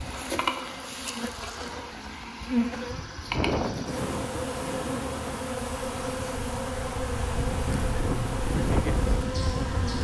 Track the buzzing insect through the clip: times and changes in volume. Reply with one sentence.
The buzzing insect can be heard from 0.0 to 9.9 s, at a steady volume.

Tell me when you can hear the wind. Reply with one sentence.
You can hear the wind from 3.3 to 9.9 s.